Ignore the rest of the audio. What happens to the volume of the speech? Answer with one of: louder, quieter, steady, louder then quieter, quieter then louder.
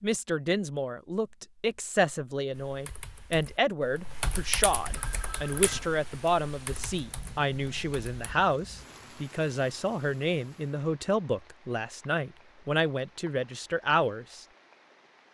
steady.